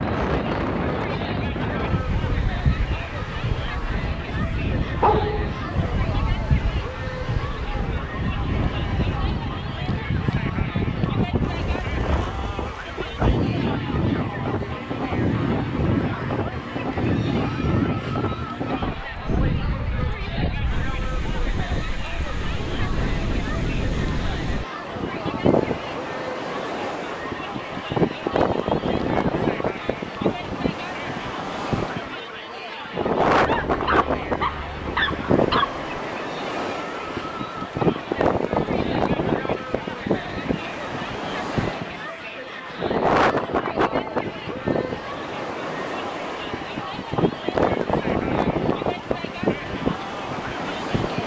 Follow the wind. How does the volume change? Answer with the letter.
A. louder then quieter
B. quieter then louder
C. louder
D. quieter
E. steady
E.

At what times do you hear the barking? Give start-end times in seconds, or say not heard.
5.0-6.0, 33.4-35.9.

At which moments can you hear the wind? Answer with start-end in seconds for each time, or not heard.
0.0-51.2.